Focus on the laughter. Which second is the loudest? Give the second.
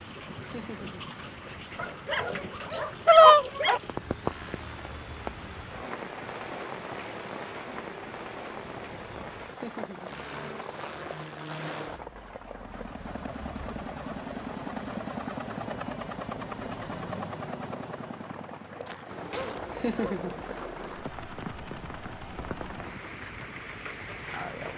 20 s.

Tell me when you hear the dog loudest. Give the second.
3 s.